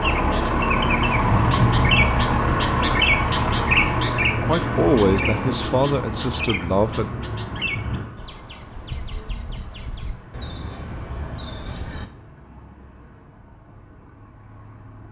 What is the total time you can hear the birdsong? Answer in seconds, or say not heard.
12 s.